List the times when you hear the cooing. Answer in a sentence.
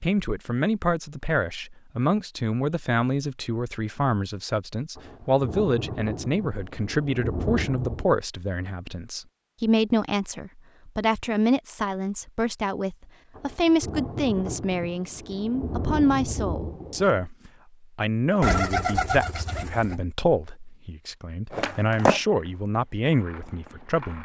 You can hear the cooing from 18.4 to 19.9 s.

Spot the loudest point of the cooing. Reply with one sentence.
The loudest moment of the cooing is at 19 seconds.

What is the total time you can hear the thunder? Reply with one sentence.
The thunder can be heard for 7 seconds in total.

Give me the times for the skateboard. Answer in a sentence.
The skateboard can be heard from 21.5 to 24.2 s.